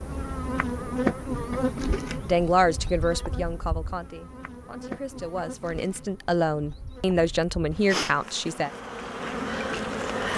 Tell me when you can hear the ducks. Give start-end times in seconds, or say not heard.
not heard.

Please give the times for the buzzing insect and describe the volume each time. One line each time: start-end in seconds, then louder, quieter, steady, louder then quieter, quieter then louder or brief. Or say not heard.
0.0-10.3 quieter then louder.